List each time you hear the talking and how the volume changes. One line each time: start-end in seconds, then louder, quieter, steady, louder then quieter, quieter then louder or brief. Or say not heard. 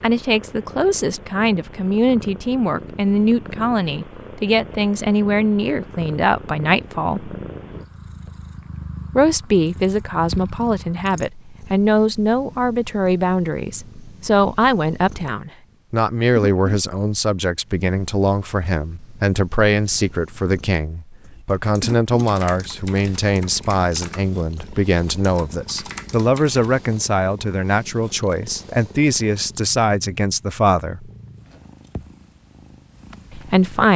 0.0-7.3 steady
9.2-31.1 steady
33.3-33.9 brief.